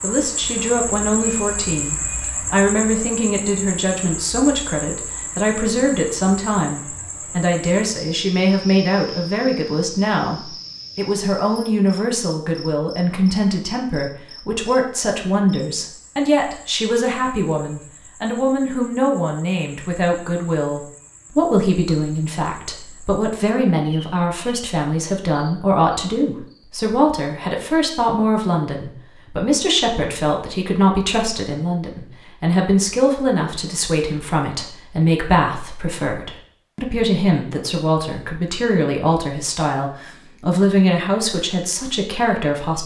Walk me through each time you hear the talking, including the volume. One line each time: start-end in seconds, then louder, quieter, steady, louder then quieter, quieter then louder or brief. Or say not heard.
0.0-42.8 steady.